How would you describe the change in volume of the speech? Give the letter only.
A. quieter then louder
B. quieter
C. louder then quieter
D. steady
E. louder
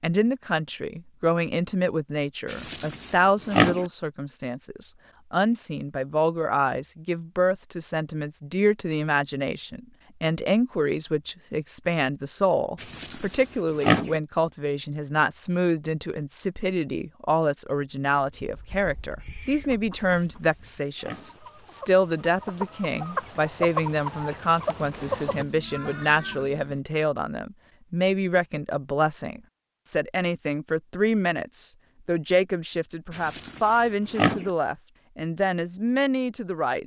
D.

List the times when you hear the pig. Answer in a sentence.
The pig can be heard from 2.5 to 3.9 s, from 12.8 to 14.2 s, from 20.0 to 21.4 s and from 33.1 to 34.5 s.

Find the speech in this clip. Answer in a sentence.
You can hear the speech from 0.0 to 36.8 s.